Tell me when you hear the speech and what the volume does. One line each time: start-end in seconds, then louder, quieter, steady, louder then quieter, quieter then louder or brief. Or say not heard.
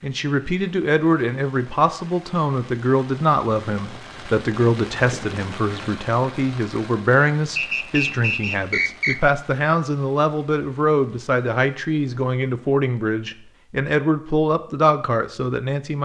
0.0-16.0 steady.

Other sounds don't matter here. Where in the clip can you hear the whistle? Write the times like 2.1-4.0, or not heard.
7.5-9.2.